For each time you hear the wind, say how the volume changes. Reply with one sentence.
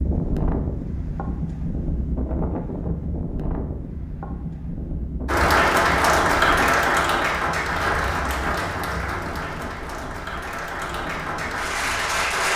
The wind can be heard from 0.0 to 12.5 s, getting quieter.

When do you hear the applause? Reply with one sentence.
The applause can be heard from 5.2 to 12.5 s.